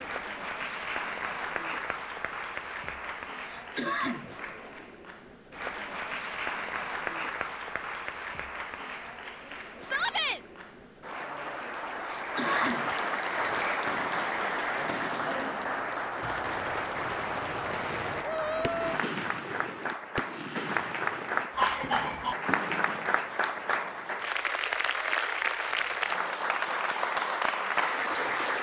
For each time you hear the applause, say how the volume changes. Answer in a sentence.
The applause can be heard from 0.0 to 28.5 s, getting louder.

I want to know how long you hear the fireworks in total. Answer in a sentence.
The fireworks can be heard for 10 seconds in total.